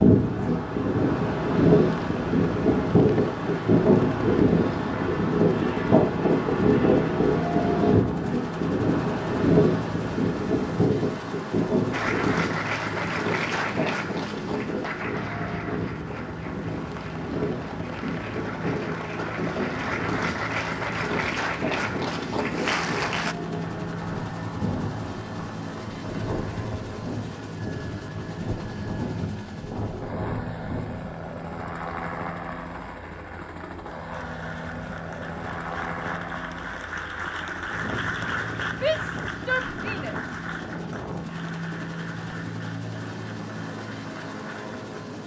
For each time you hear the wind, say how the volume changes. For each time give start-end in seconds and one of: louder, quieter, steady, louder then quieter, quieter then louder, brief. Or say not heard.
0.0-31.1 quieter.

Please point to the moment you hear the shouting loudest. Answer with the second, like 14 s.
39 s.